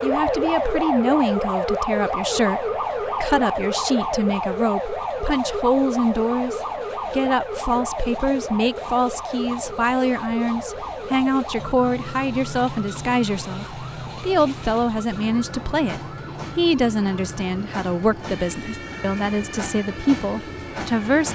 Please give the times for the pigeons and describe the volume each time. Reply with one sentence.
You can't hear the pigeons here.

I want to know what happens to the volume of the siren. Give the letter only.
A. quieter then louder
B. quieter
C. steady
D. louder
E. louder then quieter
B.